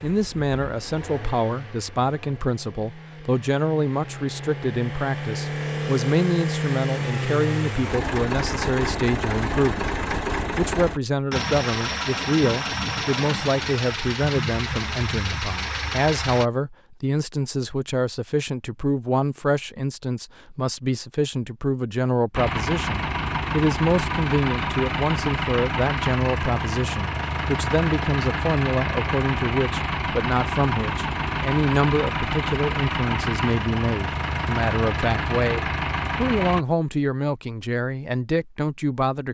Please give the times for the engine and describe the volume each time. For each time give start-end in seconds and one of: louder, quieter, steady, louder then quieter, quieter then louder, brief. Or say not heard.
0.0-16.4 louder
22.3-36.6 steady.